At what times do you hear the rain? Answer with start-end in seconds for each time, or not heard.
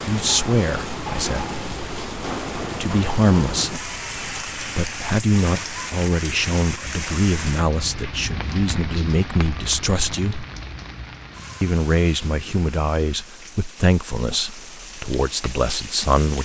0.0-16.3.